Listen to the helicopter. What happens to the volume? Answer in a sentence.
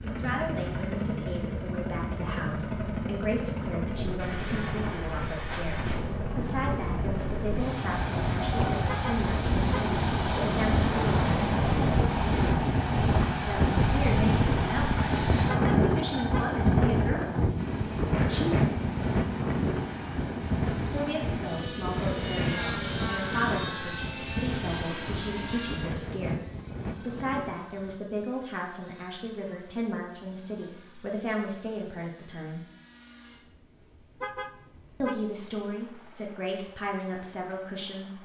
The loudness of the helicopter goes down.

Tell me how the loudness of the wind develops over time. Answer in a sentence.
The volume of the wind goes up, then down.